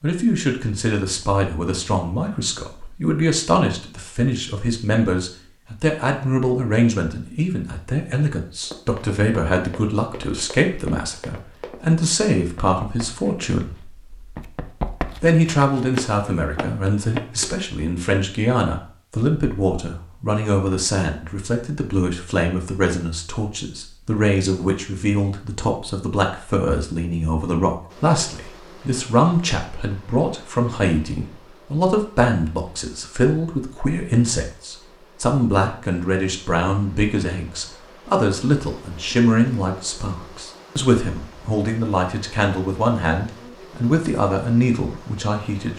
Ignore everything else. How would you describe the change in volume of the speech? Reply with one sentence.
The volume of the speech stays about the same.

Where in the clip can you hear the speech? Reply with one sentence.
The speech can be heard from 0.0 to 14.3 s and from 15.2 to 45.7 s.